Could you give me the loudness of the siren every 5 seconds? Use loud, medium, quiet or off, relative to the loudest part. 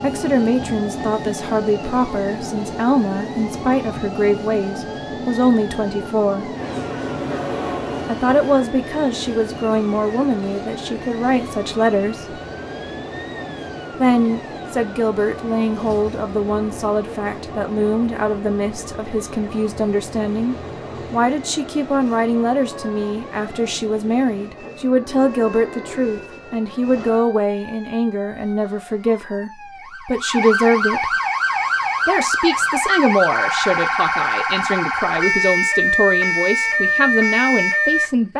quiet, quiet, quiet, quiet, quiet, quiet, loud, loud.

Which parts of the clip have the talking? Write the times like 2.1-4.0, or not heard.
0.0-6.5, 8.1-12.4, 13.9-31.1, 32.0-38.3.